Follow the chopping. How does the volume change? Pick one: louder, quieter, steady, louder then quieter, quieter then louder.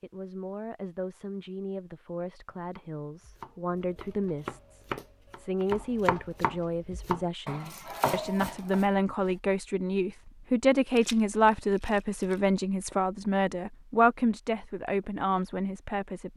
louder.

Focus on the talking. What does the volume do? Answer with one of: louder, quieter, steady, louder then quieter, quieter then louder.
louder.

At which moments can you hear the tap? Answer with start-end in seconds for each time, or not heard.
not heard.